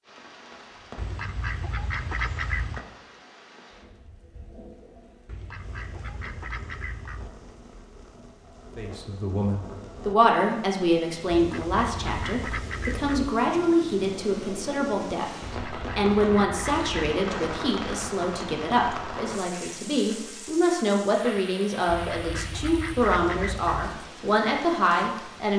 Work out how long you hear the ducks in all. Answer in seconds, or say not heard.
10 s.